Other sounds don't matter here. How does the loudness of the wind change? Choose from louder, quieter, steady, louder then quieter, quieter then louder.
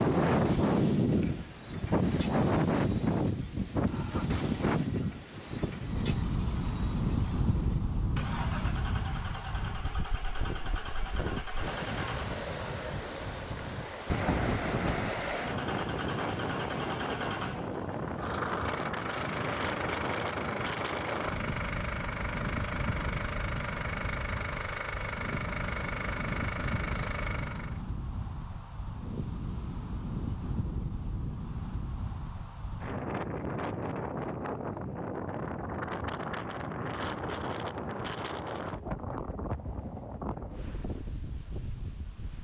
quieter.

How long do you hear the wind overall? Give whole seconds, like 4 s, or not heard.
42 s.